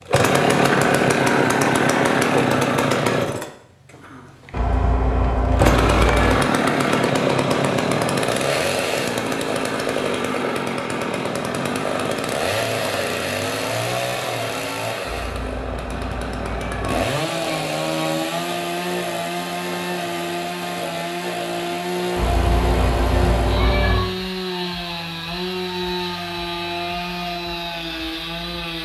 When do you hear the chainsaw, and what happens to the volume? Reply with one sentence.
The chainsaw can be heard from 0.1 to 28.8 s, getting quieter.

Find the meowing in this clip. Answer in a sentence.
You can hear the meowing from 4.5 to 6.4 s, from 15.0 to 17.1 s and from 22.1 to 24.1 s.